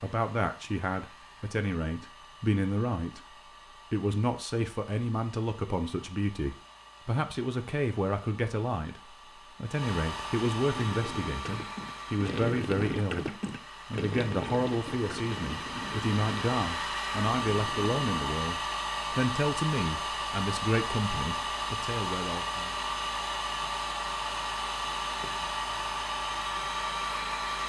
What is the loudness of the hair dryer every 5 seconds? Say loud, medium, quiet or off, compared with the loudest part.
quiet, quiet, medium, loud, loud, loud.